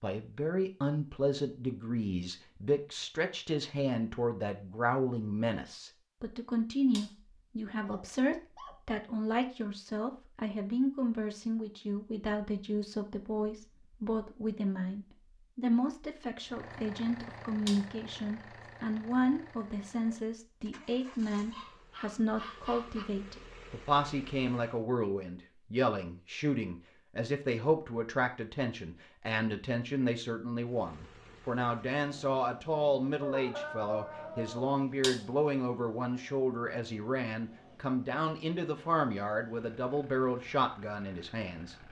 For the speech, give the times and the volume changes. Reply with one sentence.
The speech can be heard from 0.0 to 41.8 s, at a steady volume.